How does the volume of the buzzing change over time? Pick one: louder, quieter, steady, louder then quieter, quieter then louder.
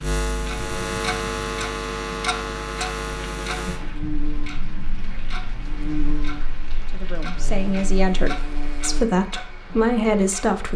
quieter.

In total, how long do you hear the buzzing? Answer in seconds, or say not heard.
9 s.